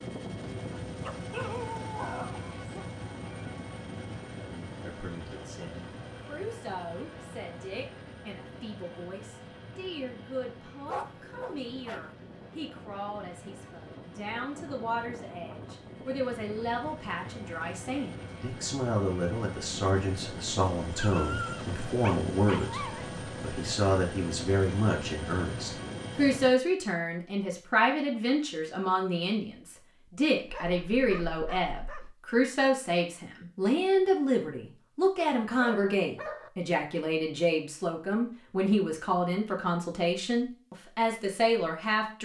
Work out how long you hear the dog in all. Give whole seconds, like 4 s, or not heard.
8 s.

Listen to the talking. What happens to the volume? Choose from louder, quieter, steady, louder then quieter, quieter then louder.
louder.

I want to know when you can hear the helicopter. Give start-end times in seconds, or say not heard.
0.0-26.6.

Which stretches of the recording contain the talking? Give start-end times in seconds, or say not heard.
4.5-42.1.